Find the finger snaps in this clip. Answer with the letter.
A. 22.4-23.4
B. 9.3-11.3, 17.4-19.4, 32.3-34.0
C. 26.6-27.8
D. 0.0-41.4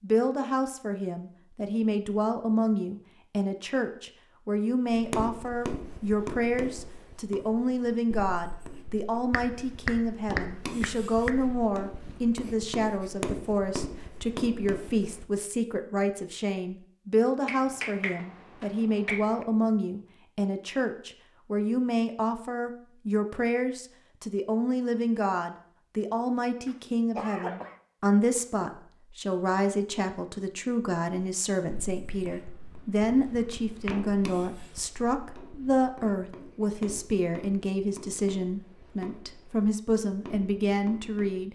B.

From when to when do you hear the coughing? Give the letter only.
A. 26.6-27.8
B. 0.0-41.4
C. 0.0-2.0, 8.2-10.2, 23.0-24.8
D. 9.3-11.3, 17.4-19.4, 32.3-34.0
A.